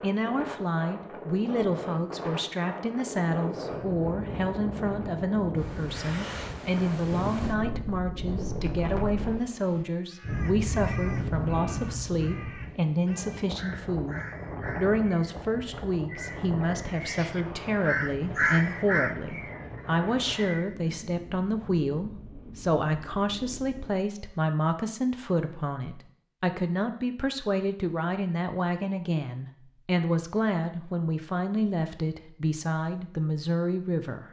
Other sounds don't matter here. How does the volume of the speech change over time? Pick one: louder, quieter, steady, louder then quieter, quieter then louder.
steady.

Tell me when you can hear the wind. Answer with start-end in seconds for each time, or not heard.
0.0-23.9.